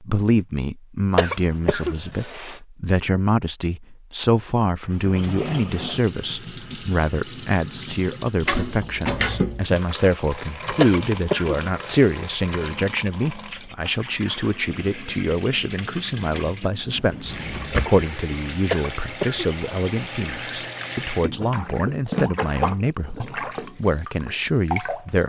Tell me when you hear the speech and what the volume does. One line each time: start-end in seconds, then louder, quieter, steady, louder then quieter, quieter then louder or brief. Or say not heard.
0.0-25.2 steady.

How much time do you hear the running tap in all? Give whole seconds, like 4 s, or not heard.
20 s.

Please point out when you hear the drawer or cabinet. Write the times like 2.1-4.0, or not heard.
8.4-9.7, 16.9-18.1.